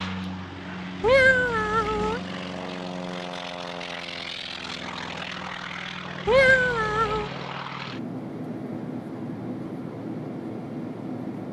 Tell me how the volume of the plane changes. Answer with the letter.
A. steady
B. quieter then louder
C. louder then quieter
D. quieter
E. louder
A.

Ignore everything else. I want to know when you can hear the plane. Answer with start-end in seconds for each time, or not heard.
0.0-11.4.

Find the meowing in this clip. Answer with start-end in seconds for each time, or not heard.
1.0-2.2, 6.2-7.3.